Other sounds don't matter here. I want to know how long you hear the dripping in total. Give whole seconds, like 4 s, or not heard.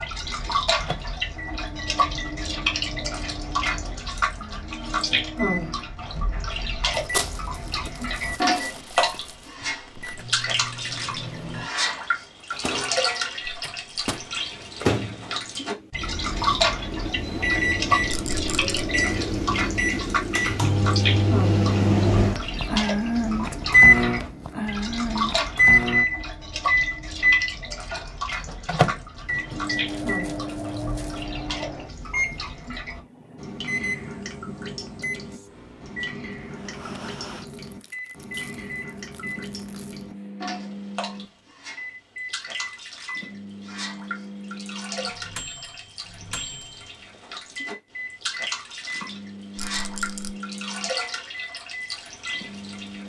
53 s.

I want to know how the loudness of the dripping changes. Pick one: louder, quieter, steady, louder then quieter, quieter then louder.
quieter.